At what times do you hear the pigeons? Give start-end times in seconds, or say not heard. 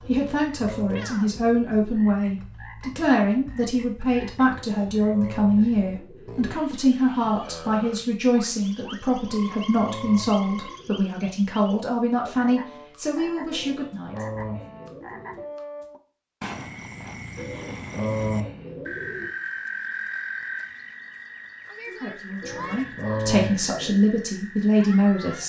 0.0-1.8, 4.5-6.4, 9.2-11.1, 13.5-15.4, 17.4-19.3, 22.4-24.0.